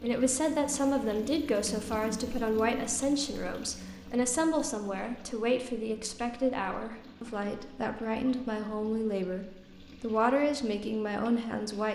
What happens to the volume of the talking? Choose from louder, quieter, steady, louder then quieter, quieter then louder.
steady.